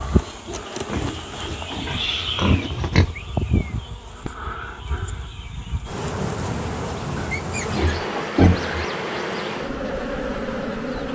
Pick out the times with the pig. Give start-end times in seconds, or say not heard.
0.8-3.1, 7.2-8.8.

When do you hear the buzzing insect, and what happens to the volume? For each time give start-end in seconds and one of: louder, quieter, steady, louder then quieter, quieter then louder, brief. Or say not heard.
0.0-11.0 louder.